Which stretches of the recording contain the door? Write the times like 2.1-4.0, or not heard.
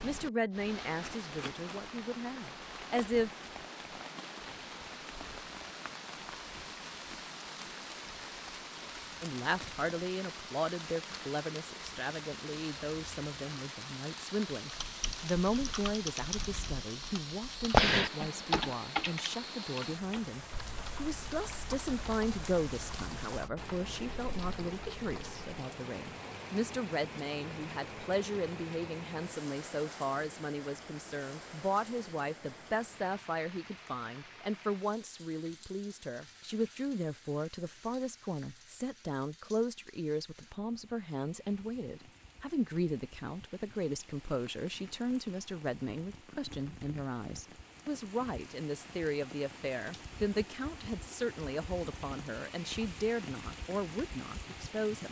not heard.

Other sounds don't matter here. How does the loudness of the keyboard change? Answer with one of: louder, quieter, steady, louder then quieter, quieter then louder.
louder then quieter.